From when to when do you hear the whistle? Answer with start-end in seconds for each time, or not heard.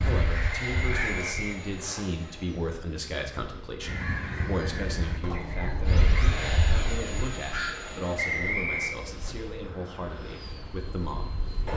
0.7-2.0, 8.2-8.9.